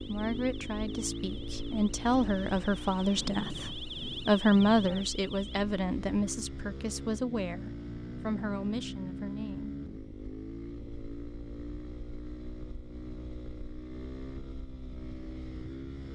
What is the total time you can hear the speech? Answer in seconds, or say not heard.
10 s.